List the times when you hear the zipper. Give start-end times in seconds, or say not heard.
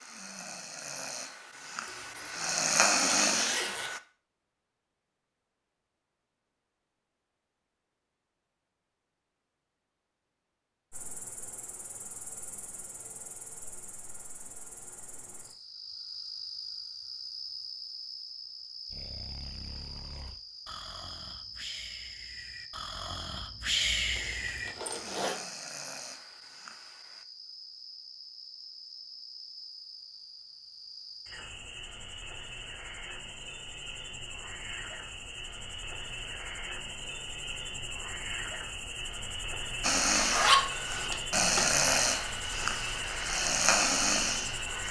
1.9-3.9, 24.1-25.4, 40.1-41.6.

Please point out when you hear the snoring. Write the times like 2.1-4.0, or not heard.
0.0-4.0, 18.9-27.2, 39.8-44.8.